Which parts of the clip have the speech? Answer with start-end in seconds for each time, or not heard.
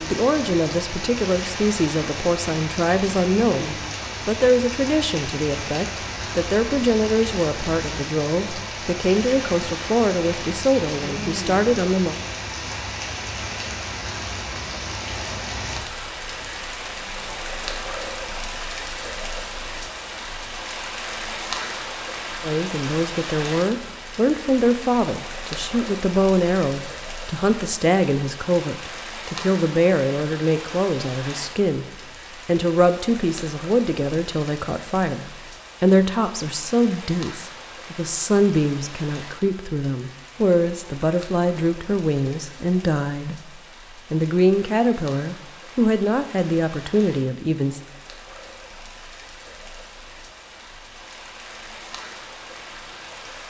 0.0-12.2, 22.4-31.9, 32.5-47.8.